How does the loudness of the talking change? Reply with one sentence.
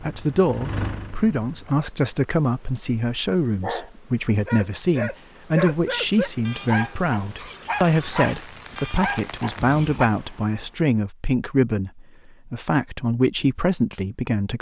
The loudness of the talking stays about the same.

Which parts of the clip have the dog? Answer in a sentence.
The dog can be heard from 3.6 to 10.1 s.